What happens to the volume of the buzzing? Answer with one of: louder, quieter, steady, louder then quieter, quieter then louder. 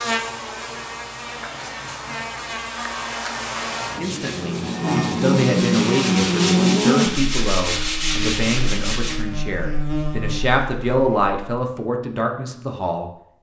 louder then quieter.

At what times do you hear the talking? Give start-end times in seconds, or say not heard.
4.0-13.1.